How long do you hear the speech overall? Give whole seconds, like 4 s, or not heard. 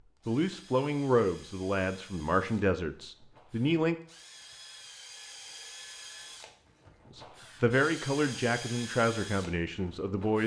7 s.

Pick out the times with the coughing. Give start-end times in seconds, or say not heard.
not heard.